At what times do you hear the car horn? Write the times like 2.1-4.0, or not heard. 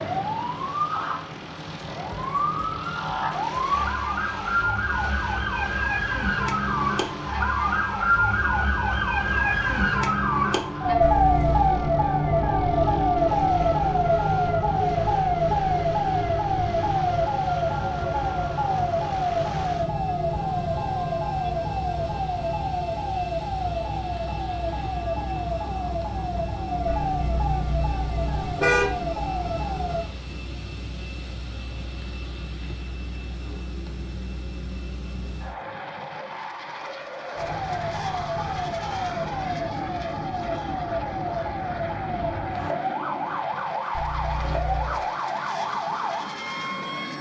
11.0-11.8, 26.9-28.9, 44.0-45.0.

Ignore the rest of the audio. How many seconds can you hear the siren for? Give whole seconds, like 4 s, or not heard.
40 s.